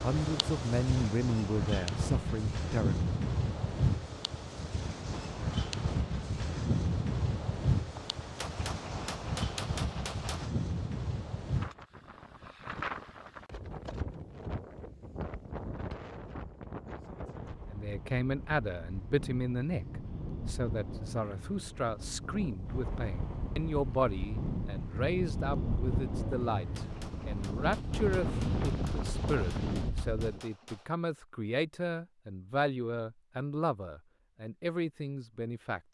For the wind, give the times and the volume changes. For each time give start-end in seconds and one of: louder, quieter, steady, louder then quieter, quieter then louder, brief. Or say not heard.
0.0-30.4 quieter then louder.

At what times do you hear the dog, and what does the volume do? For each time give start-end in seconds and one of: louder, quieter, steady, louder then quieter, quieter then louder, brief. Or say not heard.
not heard.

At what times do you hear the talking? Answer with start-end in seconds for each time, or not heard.
0.0-3.0, 17.7-35.9.